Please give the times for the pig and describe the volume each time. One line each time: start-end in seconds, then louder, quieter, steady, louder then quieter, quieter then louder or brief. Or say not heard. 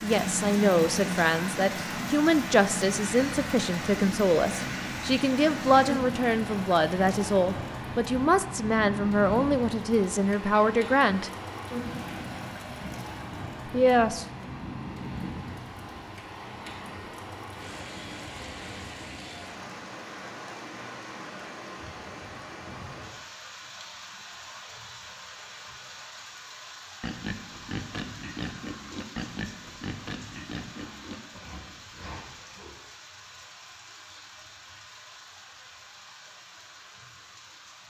27.0-32.8 quieter.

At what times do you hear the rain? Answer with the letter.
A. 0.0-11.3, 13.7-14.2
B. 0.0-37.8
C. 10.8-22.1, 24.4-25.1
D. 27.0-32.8
B.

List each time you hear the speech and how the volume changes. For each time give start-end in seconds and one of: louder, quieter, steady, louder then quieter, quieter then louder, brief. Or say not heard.
0.0-11.3 steady
13.7-14.2 brief.